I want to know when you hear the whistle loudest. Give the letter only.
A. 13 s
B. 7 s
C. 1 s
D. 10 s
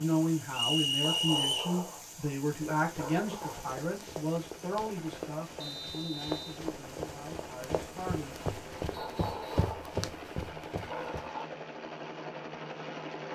C.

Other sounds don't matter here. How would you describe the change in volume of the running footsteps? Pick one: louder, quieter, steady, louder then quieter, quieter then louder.
louder.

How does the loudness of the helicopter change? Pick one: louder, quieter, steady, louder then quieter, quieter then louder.
louder.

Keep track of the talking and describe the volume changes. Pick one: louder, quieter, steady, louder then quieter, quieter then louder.
quieter.